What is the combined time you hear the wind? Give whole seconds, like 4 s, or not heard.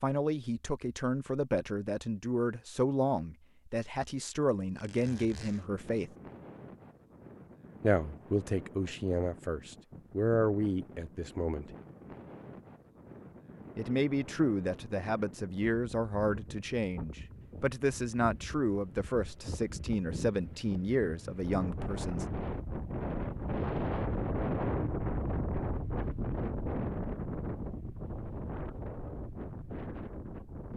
25 s.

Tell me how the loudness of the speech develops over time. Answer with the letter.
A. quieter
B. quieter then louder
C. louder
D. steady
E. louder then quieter
D.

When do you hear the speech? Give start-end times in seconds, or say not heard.
0.0-6.1, 7.8-11.7, 13.8-22.2.